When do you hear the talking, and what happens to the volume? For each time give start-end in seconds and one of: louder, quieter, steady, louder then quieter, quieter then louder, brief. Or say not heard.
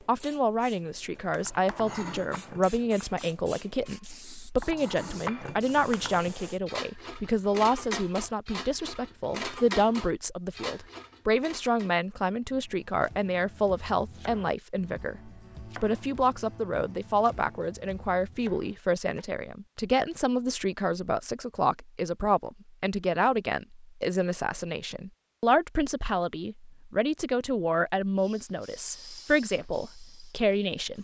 0.1-30.9 steady.